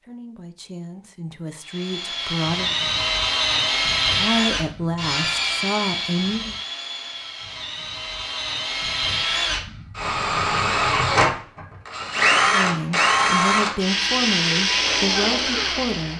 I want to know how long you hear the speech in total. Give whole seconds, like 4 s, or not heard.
9 s.